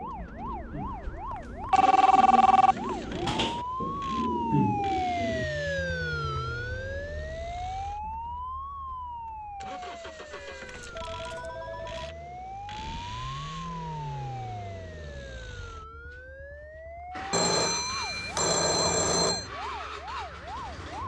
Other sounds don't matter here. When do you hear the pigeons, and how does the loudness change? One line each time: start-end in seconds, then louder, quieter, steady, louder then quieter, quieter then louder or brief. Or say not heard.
0.0-5.5 louder.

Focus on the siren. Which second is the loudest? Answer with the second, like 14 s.
5 s.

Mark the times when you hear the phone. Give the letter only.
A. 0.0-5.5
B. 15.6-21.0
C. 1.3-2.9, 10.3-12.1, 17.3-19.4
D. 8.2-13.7
C.